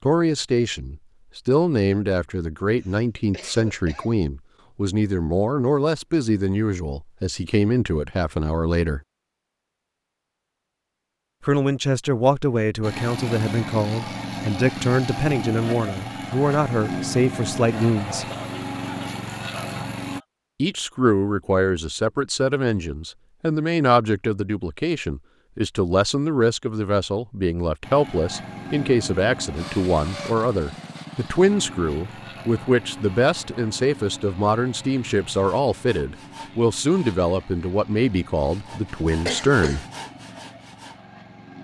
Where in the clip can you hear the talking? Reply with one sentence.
The talking can be heard from 0.0 to 9.0 s, from 11.4 to 18.2 s and from 20.6 to 39.9 s.